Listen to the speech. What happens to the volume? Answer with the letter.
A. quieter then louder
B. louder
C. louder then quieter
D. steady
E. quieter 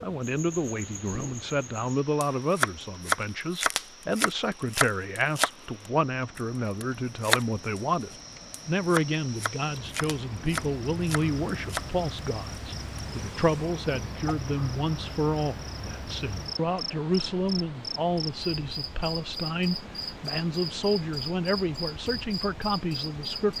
D.